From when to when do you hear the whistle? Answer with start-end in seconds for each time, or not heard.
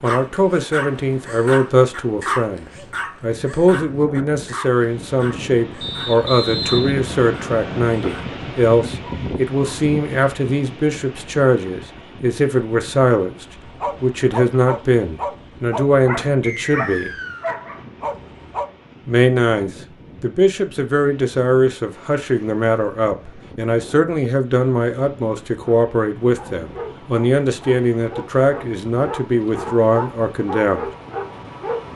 5.8-7.8, 16.4-17.6.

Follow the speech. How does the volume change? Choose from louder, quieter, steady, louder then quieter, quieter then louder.
steady.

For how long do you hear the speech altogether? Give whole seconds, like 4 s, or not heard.
29 s.